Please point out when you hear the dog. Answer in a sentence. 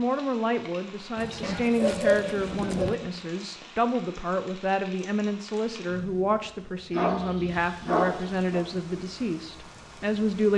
You can hear the dog from 1.4 to 3.2 s and from 6.9 to 8.7 s.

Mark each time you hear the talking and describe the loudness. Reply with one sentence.
You can hear the talking from 0.0 to 10.5 s, at a steady volume.